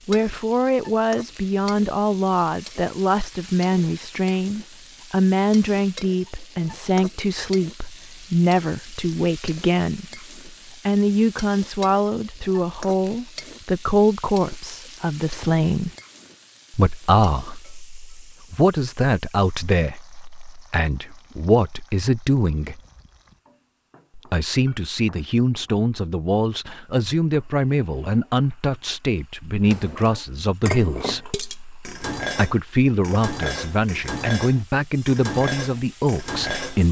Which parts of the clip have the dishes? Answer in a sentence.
You can hear the dishes from 29.6 to 36.8 s.